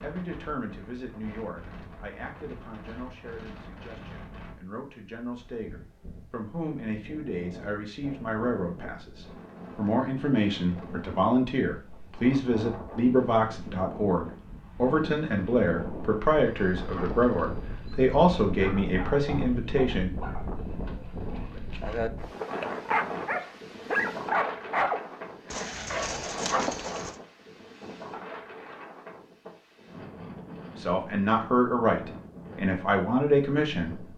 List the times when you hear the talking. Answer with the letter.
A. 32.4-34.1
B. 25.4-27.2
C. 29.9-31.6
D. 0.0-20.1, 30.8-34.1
D.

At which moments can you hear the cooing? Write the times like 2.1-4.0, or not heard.
25.4-27.2.